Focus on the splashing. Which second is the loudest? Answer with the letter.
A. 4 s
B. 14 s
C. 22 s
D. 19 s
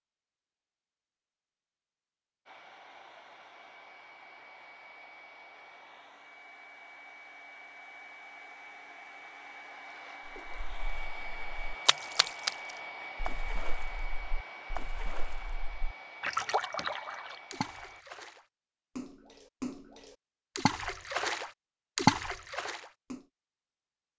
C.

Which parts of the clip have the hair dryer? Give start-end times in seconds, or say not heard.
2.5-18.1.